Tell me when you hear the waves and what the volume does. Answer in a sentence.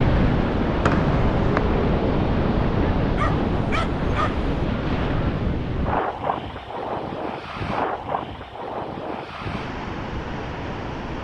The waves can be heard from 0.0 to 11.1 s, getting quieter.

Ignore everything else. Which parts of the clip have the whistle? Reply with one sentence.
You can hear the whistle from 0.8 to 1.6 s.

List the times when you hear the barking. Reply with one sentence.
The barking can be heard from 3.1 to 4.5 s.